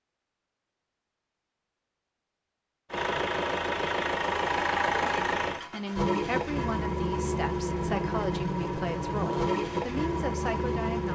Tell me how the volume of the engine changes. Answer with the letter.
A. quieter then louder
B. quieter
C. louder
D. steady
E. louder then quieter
D.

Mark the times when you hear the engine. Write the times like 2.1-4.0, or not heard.
2.9-11.1.